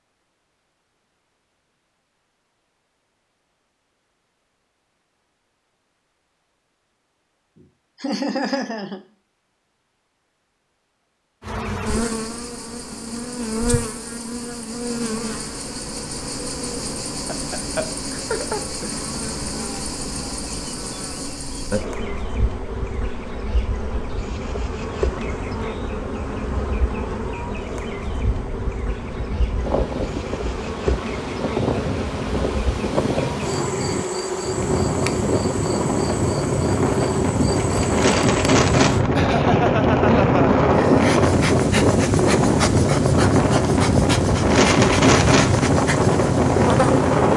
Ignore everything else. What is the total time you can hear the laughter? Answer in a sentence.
You can hear the laughter for 4 seconds altogether.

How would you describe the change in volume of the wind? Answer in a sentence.
The loudness of the wind goes up.